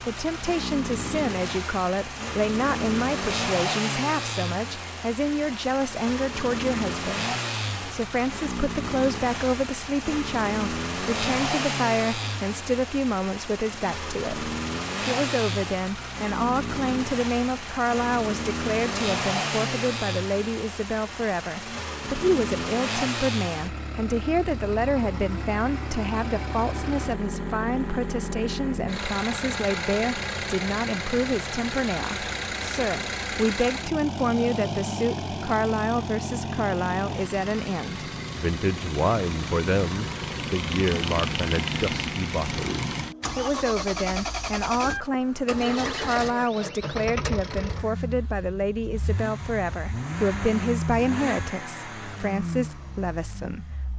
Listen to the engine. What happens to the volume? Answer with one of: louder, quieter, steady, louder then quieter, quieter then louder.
steady.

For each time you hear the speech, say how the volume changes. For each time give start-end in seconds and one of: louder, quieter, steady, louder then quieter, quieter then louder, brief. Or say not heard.
0.0-53.9 steady.